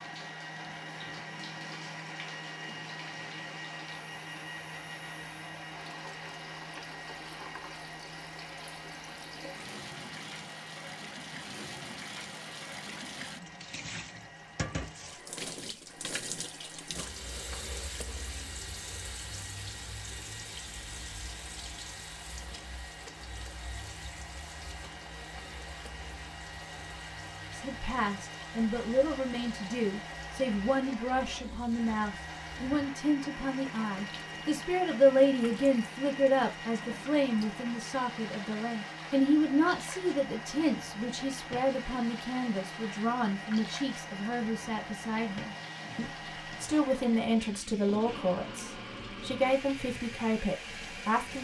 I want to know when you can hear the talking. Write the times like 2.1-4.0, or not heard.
27.6-51.3.